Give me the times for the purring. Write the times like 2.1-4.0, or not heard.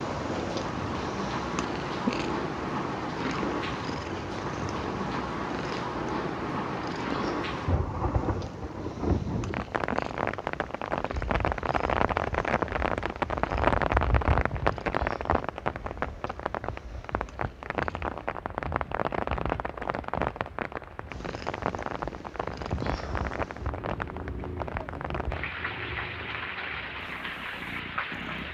0.0-18.1, 21.1-28.4.